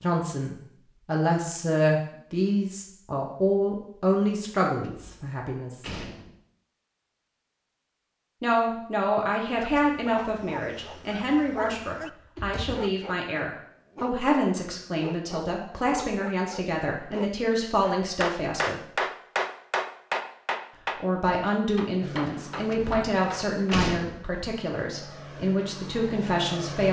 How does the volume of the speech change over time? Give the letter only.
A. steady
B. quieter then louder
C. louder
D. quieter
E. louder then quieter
A.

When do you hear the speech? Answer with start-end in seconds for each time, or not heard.
0.0-5.8, 8.4-18.9, 20.9-26.8.